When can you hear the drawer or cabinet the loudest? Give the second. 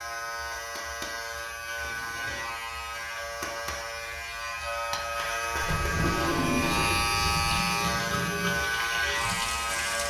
6 s.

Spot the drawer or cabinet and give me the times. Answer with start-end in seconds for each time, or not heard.
1.8-2.6, 5.6-7.6.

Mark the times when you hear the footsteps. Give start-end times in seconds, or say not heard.
not heard.